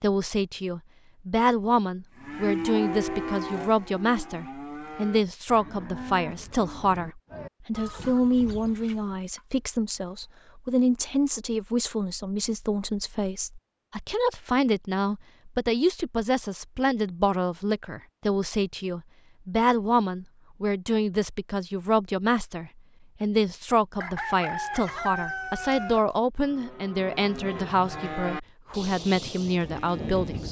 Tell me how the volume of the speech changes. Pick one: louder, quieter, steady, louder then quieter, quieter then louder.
steady.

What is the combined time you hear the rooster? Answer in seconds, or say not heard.
3 s.